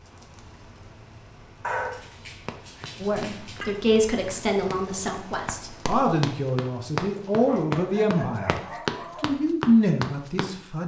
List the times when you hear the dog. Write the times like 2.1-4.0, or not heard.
1.6-3.6, 7.5-9.4.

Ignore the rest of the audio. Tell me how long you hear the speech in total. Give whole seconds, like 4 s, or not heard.
7 s.